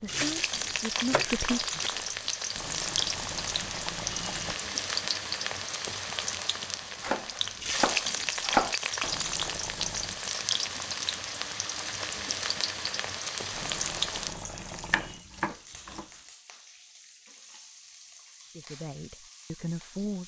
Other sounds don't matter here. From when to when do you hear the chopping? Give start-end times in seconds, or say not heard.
0.1-1.9, 7.0-8.8, 14.8-16.1.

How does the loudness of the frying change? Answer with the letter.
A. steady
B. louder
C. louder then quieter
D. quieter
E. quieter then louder
D.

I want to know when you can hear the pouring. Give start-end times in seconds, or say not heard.
2.5-4.5, 9.0-10.2, 13.5-15.2.